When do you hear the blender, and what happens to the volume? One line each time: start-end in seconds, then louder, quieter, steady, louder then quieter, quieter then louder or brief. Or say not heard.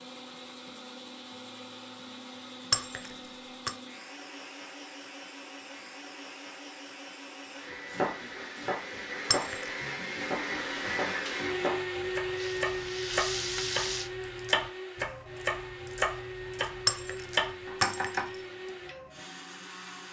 0.0-20.0 louder then quieter.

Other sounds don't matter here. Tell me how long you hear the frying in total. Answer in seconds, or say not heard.
2 s.